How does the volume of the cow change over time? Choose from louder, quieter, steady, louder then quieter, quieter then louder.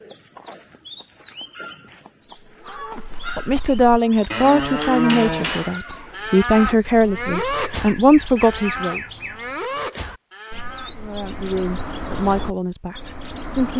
louder then quieter.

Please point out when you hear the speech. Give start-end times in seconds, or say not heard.
3.4-9.0, 10.9-13.7.